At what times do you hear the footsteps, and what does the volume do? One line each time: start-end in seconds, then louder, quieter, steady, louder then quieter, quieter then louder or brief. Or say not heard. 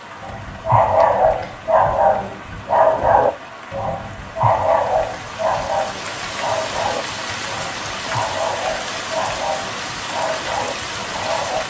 not heard.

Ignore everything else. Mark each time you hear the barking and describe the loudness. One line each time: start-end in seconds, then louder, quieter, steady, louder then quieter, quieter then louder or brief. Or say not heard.
0.2-11.6 quieter.